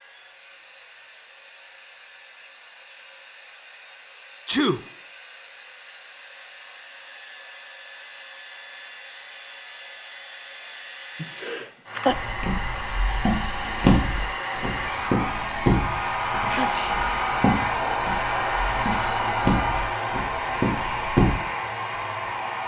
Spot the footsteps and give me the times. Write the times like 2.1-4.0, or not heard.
12.1-21.4.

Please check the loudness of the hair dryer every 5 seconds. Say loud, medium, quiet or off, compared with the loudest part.
quiet, quiet, medium, loud, loud.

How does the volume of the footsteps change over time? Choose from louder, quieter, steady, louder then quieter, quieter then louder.
quieter then louder.